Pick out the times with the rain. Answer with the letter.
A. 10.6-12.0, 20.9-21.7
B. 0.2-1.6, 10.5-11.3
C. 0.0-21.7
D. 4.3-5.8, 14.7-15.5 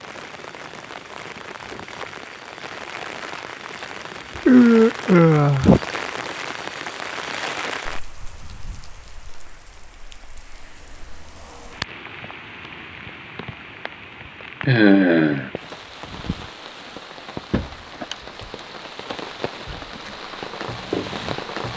C.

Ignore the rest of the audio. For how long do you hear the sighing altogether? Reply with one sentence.
You can hear the sighing for 2 seconds altogether.